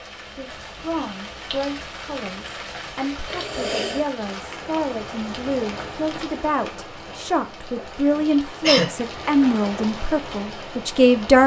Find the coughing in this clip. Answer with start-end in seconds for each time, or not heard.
3.2-4.0, 8.2-8.9.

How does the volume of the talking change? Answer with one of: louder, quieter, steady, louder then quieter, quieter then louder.
louder.